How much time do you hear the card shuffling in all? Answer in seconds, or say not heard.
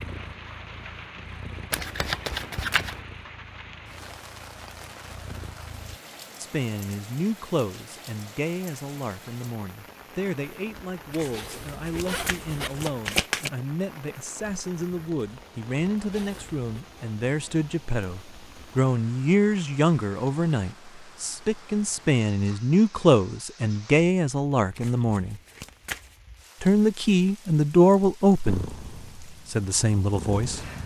5 s.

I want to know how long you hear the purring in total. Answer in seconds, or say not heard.
8 s.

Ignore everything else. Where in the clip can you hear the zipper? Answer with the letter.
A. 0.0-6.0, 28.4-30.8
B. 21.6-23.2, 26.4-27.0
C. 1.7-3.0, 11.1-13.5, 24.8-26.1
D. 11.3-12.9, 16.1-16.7
D.